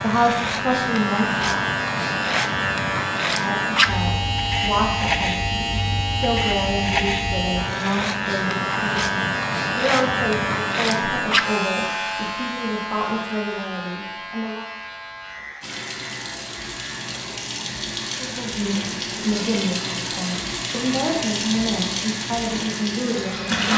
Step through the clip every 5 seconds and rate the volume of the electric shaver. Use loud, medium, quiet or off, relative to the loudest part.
loud, loud, loud, quiet, quiet.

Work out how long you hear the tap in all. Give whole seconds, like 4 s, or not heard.
8 s.